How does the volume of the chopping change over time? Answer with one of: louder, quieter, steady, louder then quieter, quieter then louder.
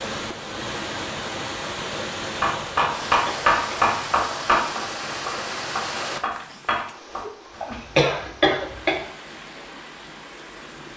quieter.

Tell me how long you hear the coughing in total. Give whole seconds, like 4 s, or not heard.
2 s.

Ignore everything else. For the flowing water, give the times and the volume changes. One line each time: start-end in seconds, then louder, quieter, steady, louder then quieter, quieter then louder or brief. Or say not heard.
0.0-10.9 quieter.